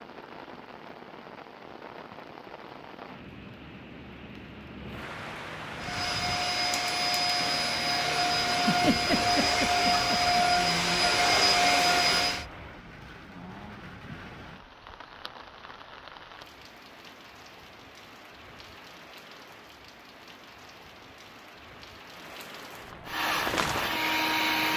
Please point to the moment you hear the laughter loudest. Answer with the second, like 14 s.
9 s.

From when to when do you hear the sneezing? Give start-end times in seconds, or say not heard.
not heard.